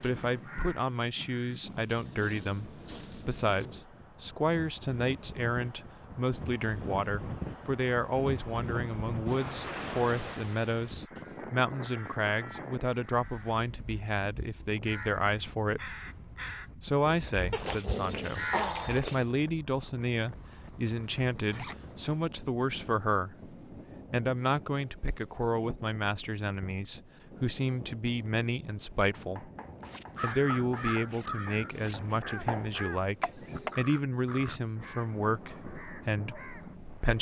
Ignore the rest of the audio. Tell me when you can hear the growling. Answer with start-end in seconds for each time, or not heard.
17.5-19.2.